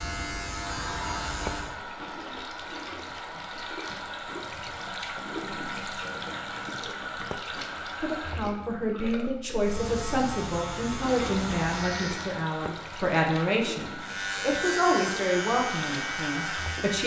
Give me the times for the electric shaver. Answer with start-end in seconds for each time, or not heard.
0.0-1.8, 9.6-12.3, 14.0-17.0.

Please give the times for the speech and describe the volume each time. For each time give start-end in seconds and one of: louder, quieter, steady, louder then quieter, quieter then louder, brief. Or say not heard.
8.0-17.0 steady.